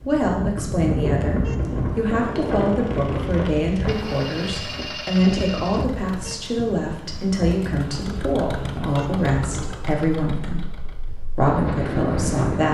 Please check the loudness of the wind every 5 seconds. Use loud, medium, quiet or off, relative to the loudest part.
loud, medium, loud.